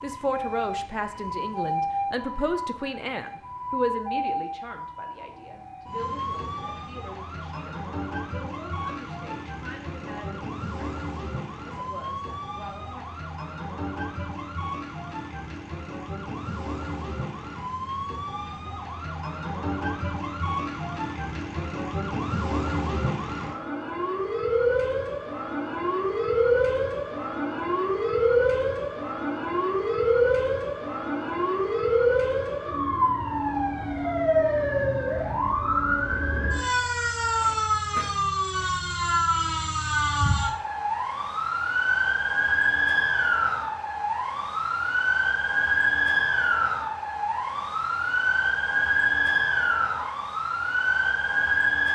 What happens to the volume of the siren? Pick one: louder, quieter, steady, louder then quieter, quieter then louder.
louder.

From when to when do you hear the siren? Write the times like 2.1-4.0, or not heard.
0.0-51.9.